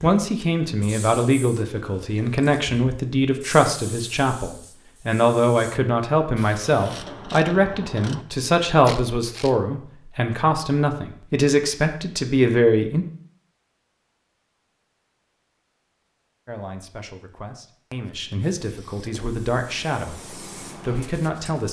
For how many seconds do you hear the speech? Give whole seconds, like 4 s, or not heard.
18 s.